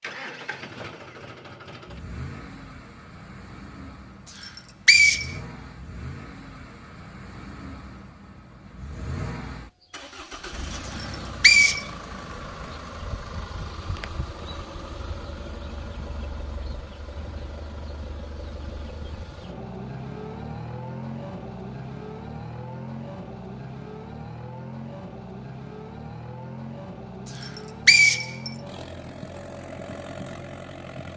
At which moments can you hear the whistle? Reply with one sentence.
You can hear the whistle from 4.3 to 5.3 s, from 10.9 to 11.8 s and from 27.4 to 28.5 s.